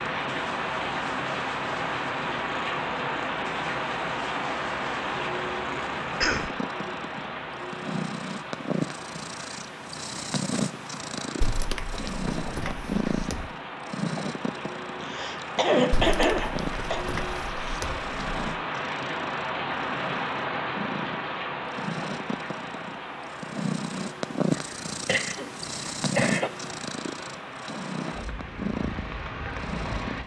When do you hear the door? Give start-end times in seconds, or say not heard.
11.4-13.5, 15.9-18.6.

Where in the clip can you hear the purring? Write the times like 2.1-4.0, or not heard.
0.0-30.2.